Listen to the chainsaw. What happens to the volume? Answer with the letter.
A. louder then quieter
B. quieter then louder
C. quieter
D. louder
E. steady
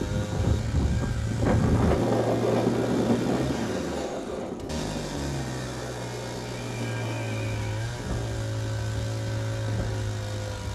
E.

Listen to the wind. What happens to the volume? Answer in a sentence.
The volume of the wind goes down.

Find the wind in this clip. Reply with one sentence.
The wind can be heard from 0.0 to 10.7 s.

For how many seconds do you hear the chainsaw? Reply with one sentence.
You can hear the chainsaw for 11 seconds altogether.